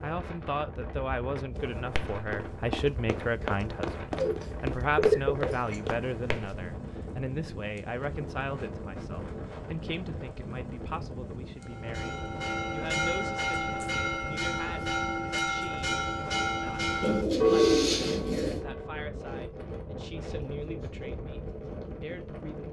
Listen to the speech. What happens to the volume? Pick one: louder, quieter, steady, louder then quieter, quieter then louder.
quieter.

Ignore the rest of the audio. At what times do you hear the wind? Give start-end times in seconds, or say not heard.
0.0-22.6.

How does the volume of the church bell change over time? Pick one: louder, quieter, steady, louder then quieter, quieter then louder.
louder.